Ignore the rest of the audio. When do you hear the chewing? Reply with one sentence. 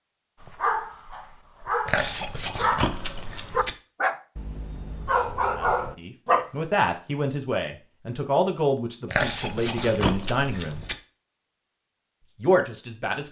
You can hear the chewing from 1.9 to 3.8 s and from 9.1 to 10.9 s.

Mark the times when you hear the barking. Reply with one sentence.
The barking can be heard from 0.4 to 6.5 s.